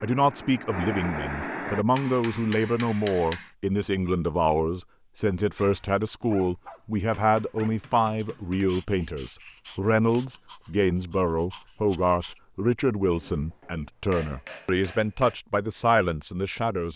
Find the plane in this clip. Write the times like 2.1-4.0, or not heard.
0.0-1.9.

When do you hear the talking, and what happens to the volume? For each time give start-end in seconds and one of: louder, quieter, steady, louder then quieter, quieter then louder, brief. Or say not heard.
0.0-16.9 steady.